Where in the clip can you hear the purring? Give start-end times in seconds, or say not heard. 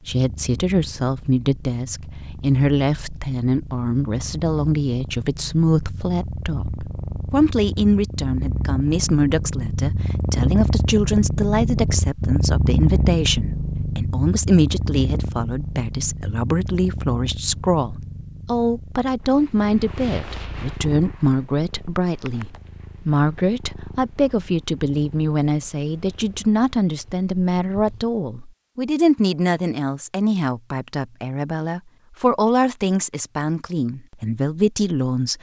0.0-28.1.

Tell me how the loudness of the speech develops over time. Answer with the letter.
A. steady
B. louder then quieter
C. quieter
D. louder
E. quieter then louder
A.